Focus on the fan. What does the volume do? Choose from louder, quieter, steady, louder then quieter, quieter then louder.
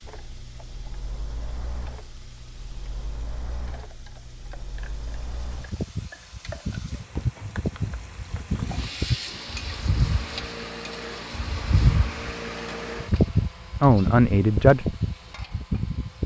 louder.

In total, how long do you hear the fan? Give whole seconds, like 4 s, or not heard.
16 s.